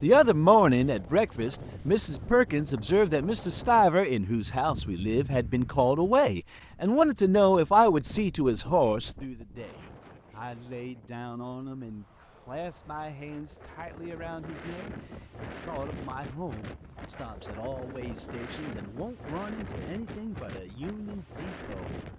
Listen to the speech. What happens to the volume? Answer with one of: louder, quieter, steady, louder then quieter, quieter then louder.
quieter.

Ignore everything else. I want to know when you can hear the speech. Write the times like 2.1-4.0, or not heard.
0.0-22.0.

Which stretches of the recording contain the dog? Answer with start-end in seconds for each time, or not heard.
not heard.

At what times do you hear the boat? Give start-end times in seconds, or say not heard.
not heard.